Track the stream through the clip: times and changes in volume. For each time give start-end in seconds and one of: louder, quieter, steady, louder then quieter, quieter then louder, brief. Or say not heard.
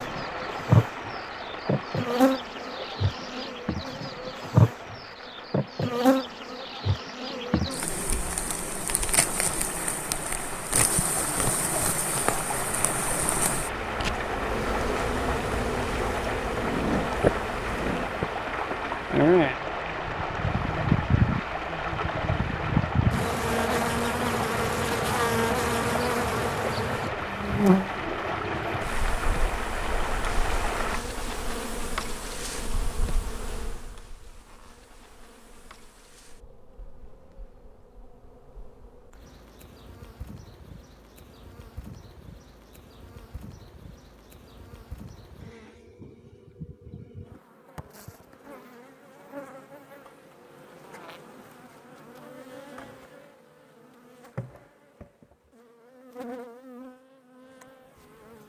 0.0-31.0 louder.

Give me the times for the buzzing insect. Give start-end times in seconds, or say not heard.
0.0-58.4.